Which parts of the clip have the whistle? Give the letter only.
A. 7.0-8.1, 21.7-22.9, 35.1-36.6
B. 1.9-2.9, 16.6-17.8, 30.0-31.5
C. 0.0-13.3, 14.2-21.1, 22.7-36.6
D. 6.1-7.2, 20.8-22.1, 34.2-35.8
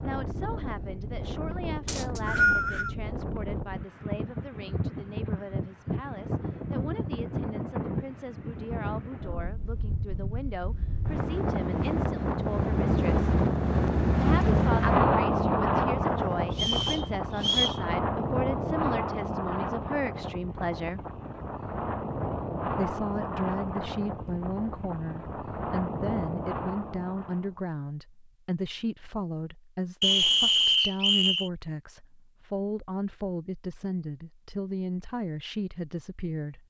B.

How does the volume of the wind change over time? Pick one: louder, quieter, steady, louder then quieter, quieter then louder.
louder then quieter.